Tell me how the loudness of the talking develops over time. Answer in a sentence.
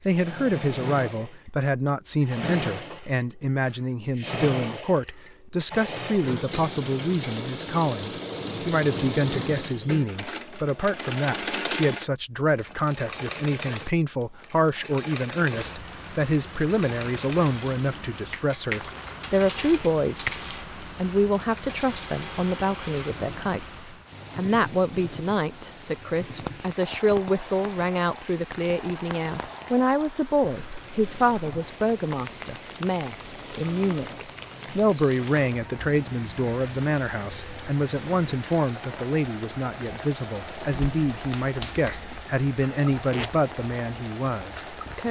The loudness of the talking stays about the same.